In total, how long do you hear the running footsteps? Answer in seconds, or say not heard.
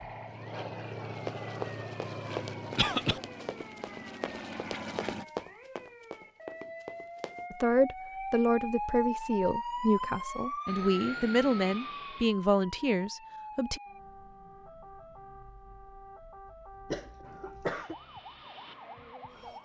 6 s.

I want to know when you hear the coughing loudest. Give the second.
3 s.